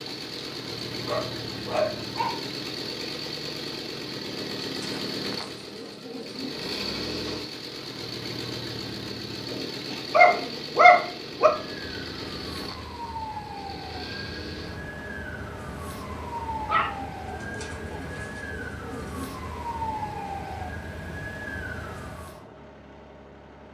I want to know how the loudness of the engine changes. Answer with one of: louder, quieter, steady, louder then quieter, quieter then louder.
quieter.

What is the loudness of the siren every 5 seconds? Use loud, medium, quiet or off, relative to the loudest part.
off, off, loud, loud, loud.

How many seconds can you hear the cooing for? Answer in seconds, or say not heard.
4 s.